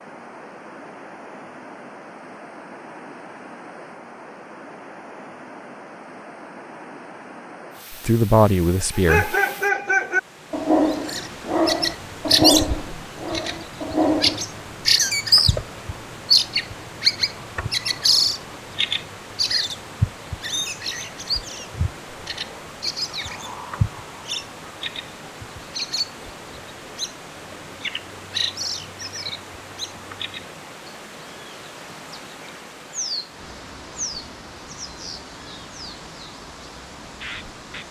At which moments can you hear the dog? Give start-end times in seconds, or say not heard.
8.9-14.4.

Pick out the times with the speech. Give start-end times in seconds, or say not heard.
7.9-9.3.